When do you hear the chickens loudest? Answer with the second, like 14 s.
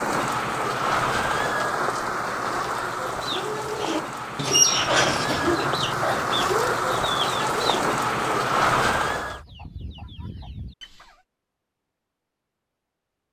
5 s.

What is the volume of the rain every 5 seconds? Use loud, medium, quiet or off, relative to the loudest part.
loud, loud, off.